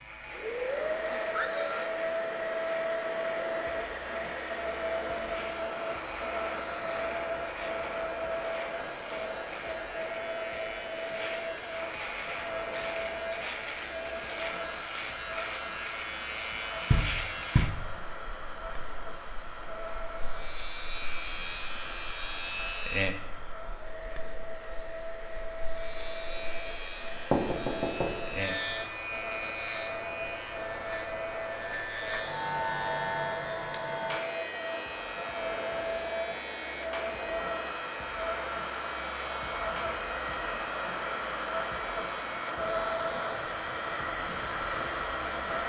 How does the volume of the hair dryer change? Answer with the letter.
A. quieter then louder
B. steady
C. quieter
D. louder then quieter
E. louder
A.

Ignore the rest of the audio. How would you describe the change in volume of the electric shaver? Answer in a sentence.
The loudness of the electric shaver goes up, then down.